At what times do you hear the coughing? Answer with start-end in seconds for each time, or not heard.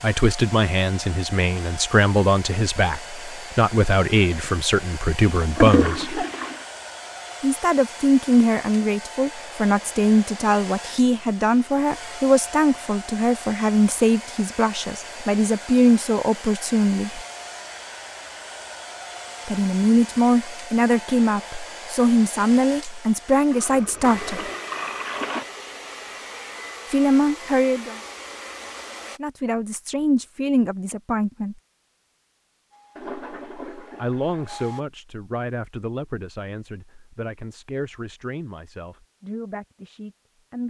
5.8-6.3.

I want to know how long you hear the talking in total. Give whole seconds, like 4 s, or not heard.
31 s.